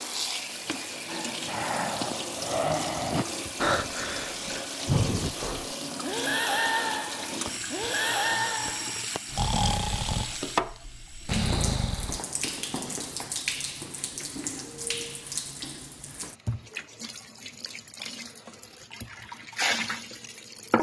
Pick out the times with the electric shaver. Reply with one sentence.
The electric shaver can't be heard in this clip.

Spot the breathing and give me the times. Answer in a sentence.
You can hear the breathing from 1.1 to 12.2 s.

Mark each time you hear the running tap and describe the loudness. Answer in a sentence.
The running tap can be heard from 0.0 to 20.7 s, at a steady volume.